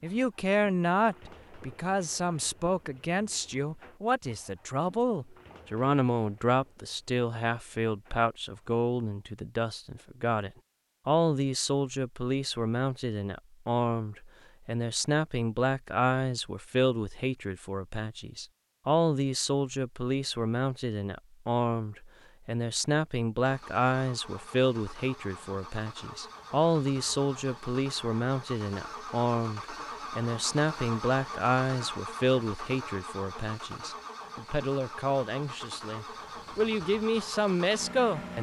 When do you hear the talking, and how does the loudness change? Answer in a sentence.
You can hear the talking from 0.0 to 38.3 s, at a steady volume.